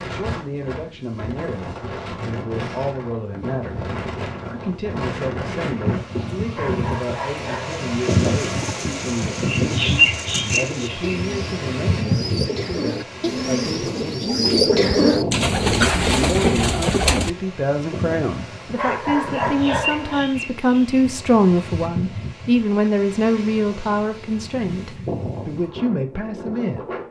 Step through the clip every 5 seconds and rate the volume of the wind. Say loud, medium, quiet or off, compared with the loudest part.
medium, loud, loud, medium, medium, medium.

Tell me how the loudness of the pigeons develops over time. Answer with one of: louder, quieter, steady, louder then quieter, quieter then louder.
louder.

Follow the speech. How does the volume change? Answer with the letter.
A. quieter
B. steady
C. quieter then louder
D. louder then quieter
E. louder
E.